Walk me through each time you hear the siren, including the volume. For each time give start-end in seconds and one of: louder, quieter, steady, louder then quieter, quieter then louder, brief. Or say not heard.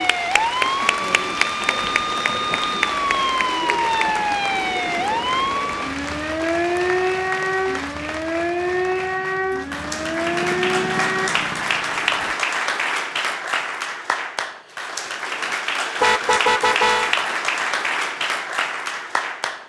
0.0-11.3 steady.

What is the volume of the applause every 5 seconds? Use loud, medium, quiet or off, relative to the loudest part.
loud, medium, loud, loud.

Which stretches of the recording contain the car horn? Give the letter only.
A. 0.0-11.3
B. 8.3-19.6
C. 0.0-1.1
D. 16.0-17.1
D.